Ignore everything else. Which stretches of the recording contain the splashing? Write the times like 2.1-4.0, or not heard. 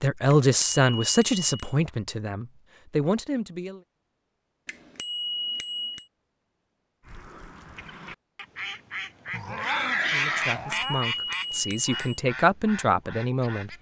not heard.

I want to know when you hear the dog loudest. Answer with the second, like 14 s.
10 s.